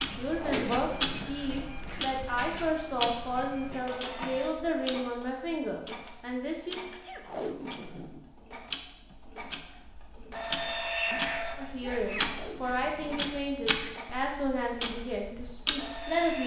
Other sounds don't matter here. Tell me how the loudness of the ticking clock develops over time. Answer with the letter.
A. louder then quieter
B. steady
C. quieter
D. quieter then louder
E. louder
D.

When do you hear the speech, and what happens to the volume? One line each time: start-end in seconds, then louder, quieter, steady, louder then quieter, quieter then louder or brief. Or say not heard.
0.0-6.8 steady
11.6-16.4 quieter.